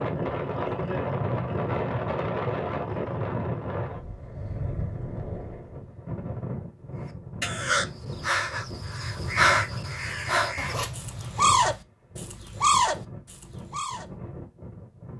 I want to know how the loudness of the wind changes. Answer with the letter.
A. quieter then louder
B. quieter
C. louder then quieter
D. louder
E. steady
B.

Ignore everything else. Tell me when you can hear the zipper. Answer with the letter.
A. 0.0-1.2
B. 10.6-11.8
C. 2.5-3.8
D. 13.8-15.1
B.